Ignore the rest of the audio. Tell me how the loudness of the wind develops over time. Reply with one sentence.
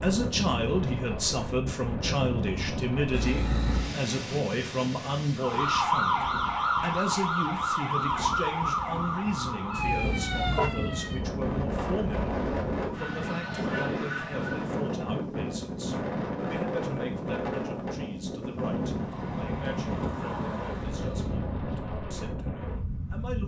The loudness of the wind goes down, then up.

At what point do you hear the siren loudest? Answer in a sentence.
The loudest moment of the siren is at 6 seconds.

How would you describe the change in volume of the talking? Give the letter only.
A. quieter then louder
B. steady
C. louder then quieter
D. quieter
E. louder
D.